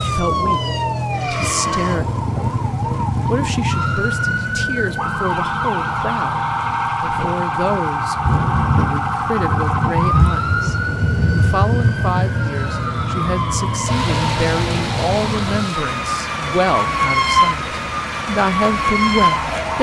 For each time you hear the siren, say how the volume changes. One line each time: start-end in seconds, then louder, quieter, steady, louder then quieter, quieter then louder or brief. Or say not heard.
0.0-19.7 steady.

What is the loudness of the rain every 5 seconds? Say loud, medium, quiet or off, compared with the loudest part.
medium, loud, loud, loud.